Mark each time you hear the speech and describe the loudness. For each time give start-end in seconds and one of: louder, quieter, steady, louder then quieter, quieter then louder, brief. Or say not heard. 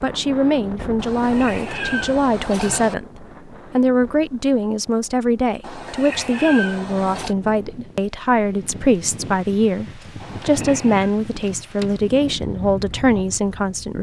0.0-13.9 steady.